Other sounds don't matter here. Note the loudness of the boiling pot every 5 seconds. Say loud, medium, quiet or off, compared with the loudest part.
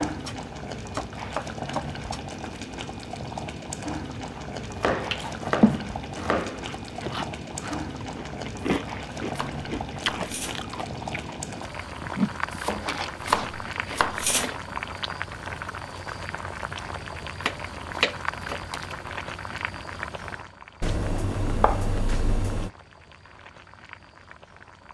loud, loud, loud, loud, medium.